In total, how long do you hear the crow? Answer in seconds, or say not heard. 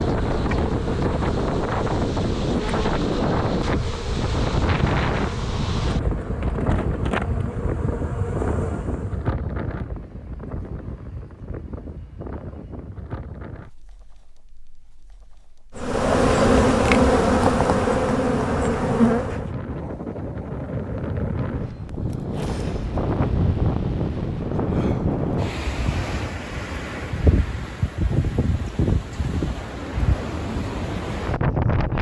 not heard.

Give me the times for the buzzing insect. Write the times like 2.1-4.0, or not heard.
0.0-9.2, 15.8-19.6.